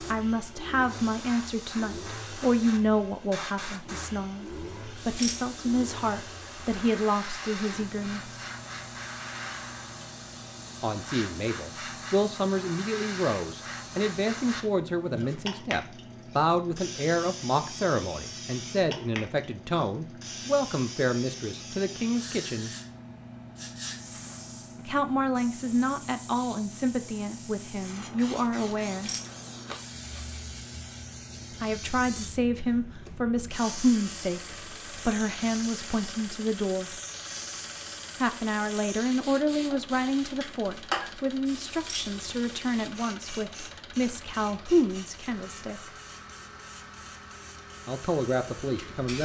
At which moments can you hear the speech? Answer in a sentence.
The speech can be heard from 0.0 to 8.3 s, from 10.8 to 22.7 s, from 24.9 to 29.1 s, from 31.6 to 37.0 s, from 38.2 to 45.9 s and from 47.9 to 49.2 s.